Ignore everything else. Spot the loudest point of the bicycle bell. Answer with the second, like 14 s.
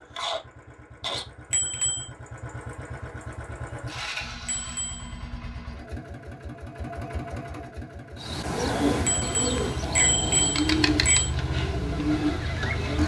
10 s.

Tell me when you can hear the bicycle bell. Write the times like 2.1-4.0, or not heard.
1.5-2.1, 4.5-5.2, 9.1-11.3.